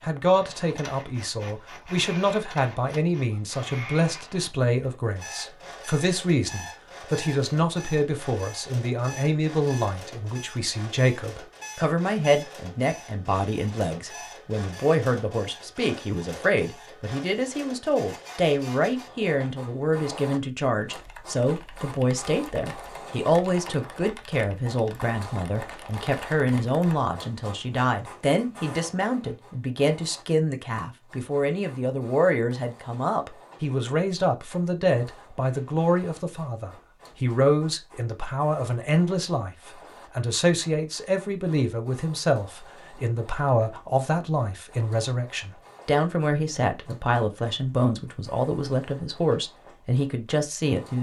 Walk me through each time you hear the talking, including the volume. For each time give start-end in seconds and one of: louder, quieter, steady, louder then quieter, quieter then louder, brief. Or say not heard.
0.0-50.9 steady.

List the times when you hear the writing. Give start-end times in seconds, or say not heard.
not heard.